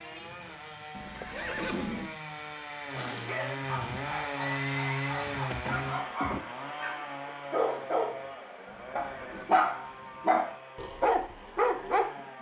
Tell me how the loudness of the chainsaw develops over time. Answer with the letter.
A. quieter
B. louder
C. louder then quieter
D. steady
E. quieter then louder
C.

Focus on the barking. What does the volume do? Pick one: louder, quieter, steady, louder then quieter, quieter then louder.
louder.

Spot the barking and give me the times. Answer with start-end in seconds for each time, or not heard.
2.9-12.1.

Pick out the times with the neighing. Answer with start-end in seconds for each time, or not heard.
0.9-2.1, 4.6-6.4, 8.7-9.5.